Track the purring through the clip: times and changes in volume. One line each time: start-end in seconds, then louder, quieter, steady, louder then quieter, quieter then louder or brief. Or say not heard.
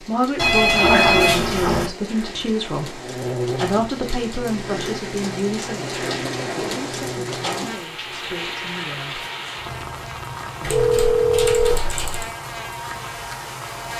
not heard.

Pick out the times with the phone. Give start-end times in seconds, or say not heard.
0.3-1.9, 10.6-12.2.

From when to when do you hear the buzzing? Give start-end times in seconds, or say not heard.
3.0-13.9.